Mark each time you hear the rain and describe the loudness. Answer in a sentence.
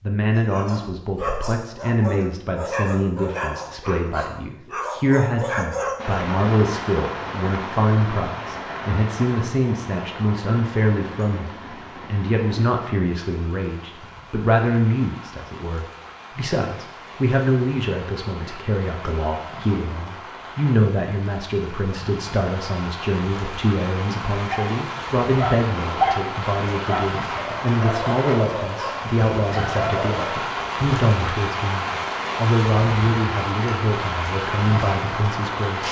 The rain can be heard from 6.0 to 35.8 s, getting quieter then louder.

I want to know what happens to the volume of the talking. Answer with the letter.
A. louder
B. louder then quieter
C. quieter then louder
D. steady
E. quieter
D.